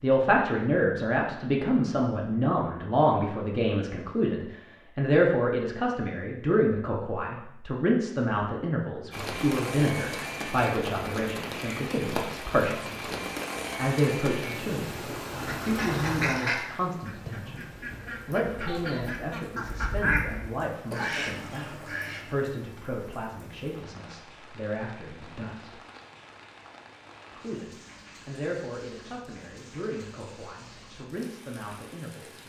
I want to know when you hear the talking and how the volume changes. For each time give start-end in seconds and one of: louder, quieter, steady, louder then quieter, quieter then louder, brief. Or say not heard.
0.0-25.8 quieter
27.3-32.4 quieter then louder.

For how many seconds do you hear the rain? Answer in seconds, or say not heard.
23 s.